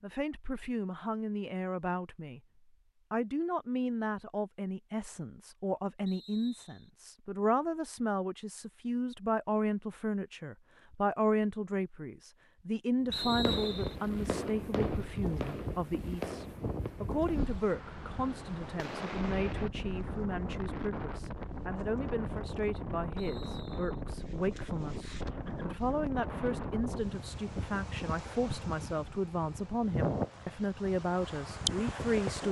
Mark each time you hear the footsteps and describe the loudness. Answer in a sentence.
The footsteps can't be heard in this clip.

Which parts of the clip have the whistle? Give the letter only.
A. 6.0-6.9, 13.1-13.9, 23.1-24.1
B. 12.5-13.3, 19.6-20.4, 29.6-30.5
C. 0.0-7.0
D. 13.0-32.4
A.